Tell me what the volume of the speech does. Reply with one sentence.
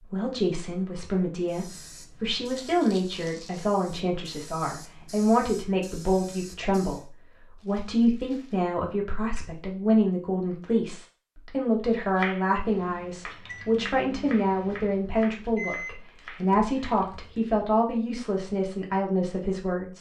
The volume of the speech stays about the same.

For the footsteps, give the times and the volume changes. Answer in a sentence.
You can't hear the footsteps here.